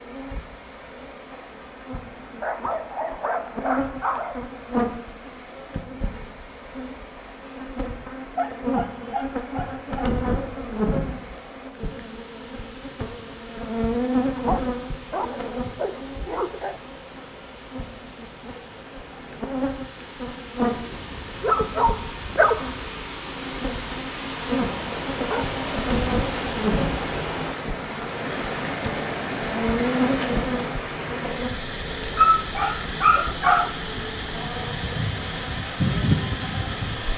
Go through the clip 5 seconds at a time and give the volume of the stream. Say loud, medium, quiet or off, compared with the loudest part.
quiet, quiet, quiet, quiet, medium, loud, loud, loud.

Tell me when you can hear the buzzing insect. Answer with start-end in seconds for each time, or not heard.
0.0-37.1.